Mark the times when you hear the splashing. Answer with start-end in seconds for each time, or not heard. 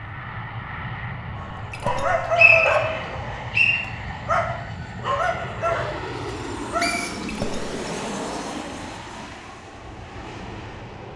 1.7-2.2, 7.2-7.8.